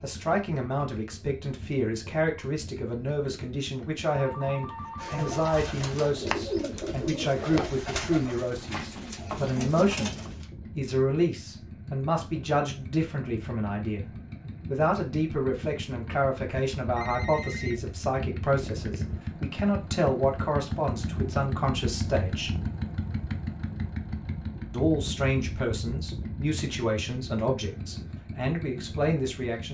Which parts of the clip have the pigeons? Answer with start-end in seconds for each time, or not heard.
5.0-10.5.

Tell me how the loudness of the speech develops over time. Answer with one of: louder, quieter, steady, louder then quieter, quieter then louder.
steady.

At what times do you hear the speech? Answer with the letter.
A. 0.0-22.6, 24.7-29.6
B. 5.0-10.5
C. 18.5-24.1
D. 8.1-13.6
A.